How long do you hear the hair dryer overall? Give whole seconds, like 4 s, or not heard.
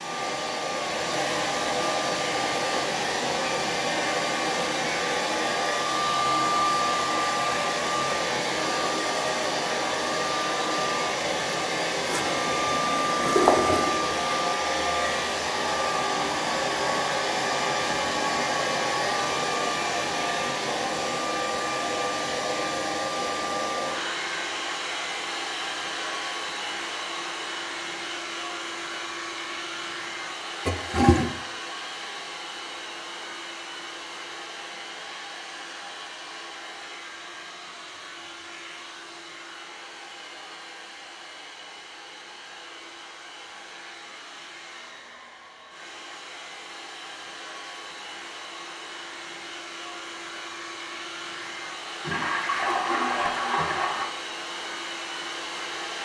56 s.